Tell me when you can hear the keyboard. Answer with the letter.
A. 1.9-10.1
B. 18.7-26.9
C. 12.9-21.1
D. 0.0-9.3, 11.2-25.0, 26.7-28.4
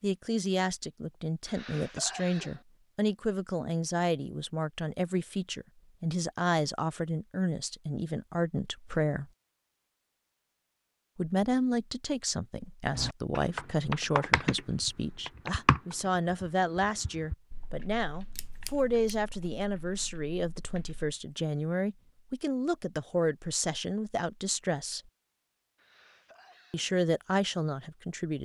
C.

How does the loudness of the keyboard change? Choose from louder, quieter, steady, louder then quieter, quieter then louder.
quieter.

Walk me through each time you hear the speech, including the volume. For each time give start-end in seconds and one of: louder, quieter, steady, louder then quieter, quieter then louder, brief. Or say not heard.
0.0-9.3 steady
11.2-25.0 steady
26.7-28.4 brief.